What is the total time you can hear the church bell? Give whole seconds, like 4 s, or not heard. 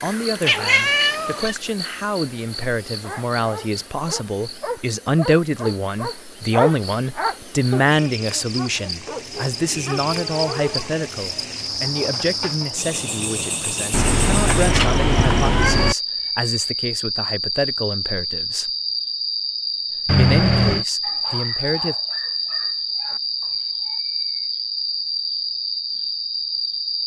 not heard.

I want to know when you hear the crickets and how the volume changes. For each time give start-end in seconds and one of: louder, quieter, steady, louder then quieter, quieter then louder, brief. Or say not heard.
0.0-27.0 louder.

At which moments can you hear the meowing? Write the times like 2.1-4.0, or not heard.
0.5-1.6, 13.9-15.9, 20.1-20.9.